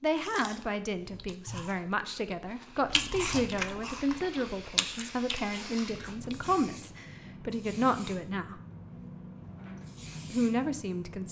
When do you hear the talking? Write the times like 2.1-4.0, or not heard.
0.0-8.6, 10.3-11.2.